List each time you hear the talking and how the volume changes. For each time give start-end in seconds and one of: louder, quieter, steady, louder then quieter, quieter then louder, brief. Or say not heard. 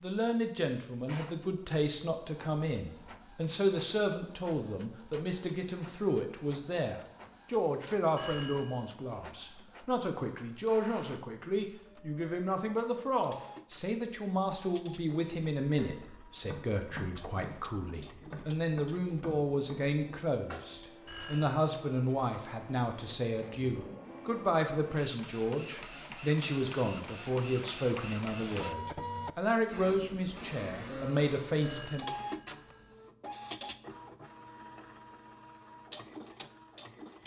0.0-32.0 steady.